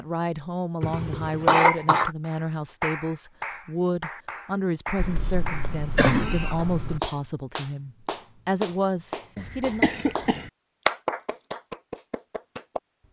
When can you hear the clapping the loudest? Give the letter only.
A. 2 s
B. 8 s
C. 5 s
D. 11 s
D.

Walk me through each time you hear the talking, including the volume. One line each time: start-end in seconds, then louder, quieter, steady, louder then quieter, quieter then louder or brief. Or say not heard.
0.0-9.8 steady.